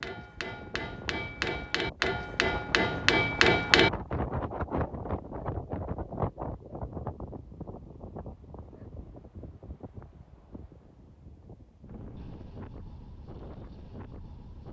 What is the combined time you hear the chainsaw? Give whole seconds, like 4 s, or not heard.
not heard.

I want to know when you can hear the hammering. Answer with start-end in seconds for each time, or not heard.
0.0-3.9.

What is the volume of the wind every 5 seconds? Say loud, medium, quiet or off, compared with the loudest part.
loud, loud, medium.